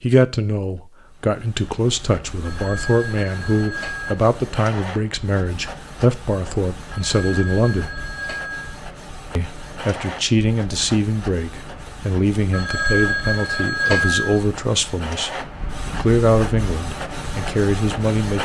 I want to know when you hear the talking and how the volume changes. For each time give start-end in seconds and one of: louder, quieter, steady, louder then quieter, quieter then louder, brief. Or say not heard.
0.0-8.0 steady
9.3-15.3 steady
15.9-18.4 brief.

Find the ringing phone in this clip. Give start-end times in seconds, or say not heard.
2.5-4.2, 6.9-8.8, 12.5-14.4.